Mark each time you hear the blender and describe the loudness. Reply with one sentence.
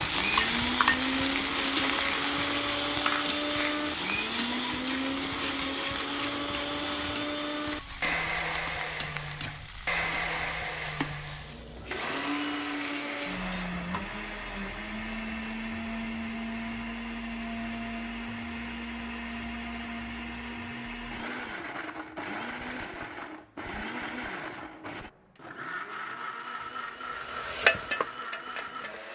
The blender can be heard from 0.0 to 29.1 s, getting quieter.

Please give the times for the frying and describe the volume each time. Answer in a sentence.
The frying can be heard from 0.0 to 13.7 s, getting quieter; and briefly from 26.6 to 29.1 s.